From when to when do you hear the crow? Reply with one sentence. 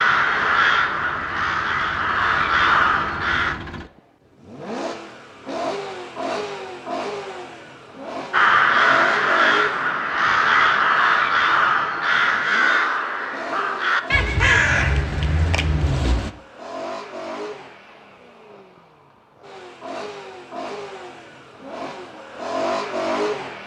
The crow can be heard from 0.0 to 3.5 s and from 8.3 to 16.3 s.